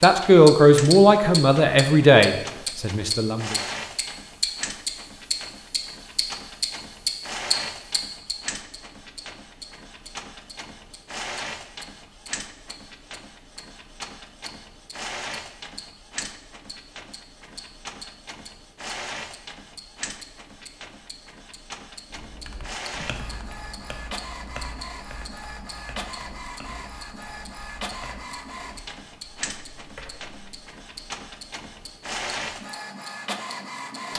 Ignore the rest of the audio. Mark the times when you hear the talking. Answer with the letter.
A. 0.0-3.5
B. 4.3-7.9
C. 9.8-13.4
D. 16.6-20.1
A.